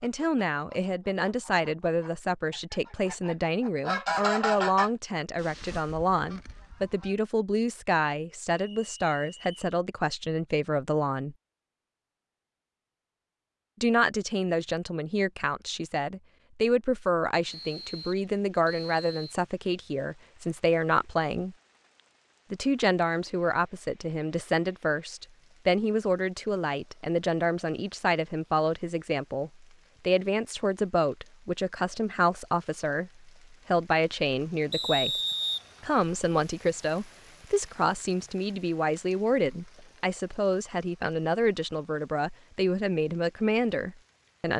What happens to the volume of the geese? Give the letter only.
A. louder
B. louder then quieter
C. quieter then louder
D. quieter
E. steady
B.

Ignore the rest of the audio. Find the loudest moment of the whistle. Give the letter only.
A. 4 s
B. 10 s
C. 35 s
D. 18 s
C.